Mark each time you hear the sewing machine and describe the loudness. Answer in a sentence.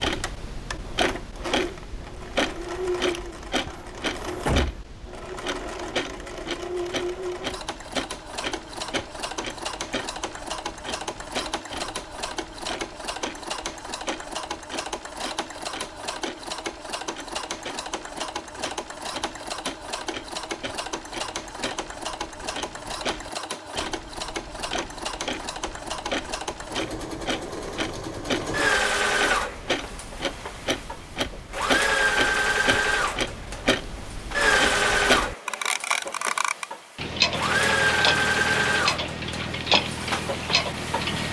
The sewing machine can be heard from 0.0 to 41.2 s, getting louder.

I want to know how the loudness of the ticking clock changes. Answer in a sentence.
The volume of the ticking clock goes down, then up.